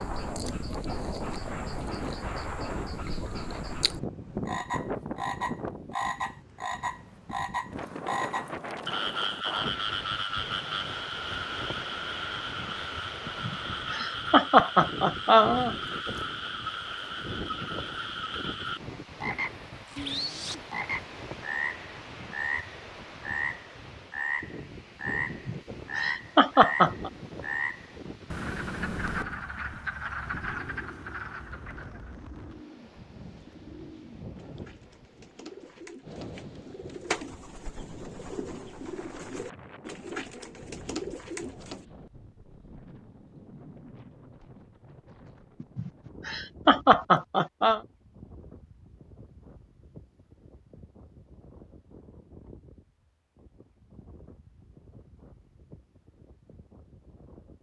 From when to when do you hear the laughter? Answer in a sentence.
You can hear the laughter from 13.2 to 15.8 s, from 25.3 to 27.1 s and from 45.6 to 47.8 s.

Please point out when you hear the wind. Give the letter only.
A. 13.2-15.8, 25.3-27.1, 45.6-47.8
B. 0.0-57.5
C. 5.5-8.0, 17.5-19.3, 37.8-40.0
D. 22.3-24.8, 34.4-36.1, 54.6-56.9
B.